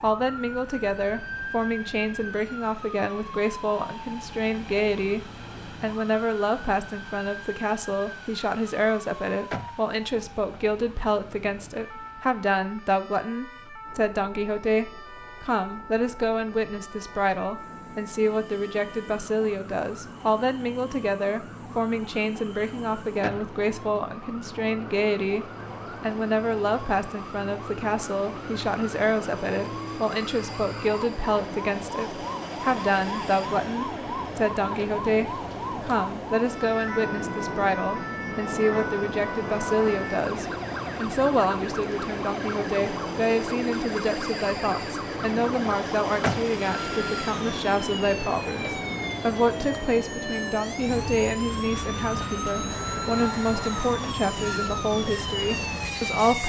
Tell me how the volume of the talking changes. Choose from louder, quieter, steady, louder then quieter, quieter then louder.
steady.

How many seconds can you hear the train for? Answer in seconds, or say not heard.
56 s.